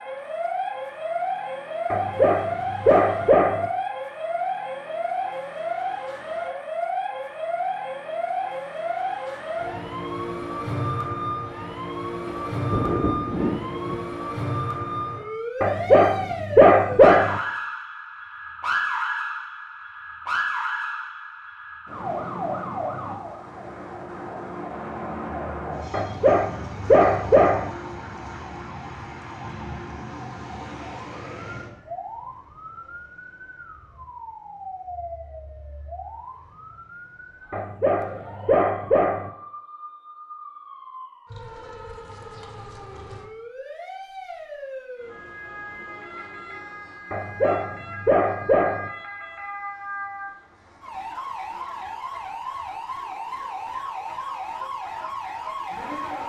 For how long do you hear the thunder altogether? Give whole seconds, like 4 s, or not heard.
2 s.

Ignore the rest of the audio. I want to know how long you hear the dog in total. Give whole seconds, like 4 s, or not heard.
9 s.